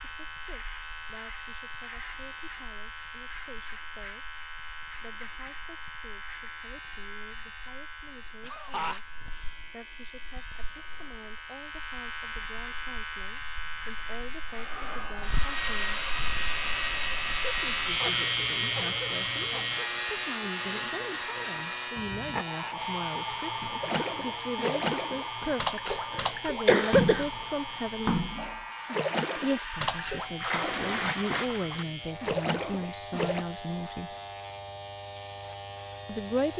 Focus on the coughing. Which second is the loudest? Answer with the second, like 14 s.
27 s.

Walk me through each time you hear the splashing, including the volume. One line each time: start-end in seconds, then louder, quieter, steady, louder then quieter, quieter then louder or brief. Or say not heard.
23.8-33.5 steady.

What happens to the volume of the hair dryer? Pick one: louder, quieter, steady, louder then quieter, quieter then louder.
quieter.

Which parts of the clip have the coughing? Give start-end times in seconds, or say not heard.
8.4-9.5, 18.0-19.8, 26.6-27.2.